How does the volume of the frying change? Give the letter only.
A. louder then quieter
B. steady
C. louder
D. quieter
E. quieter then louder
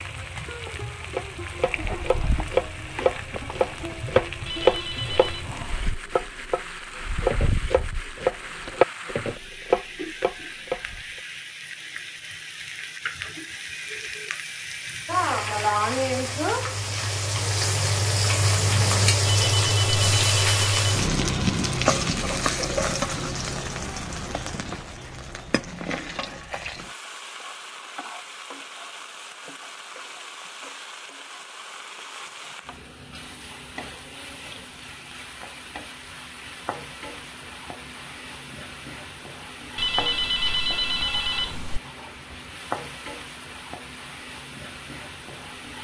A.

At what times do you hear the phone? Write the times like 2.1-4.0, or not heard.
4.5-5.5, 19.2-20.8, 39.8-41.8.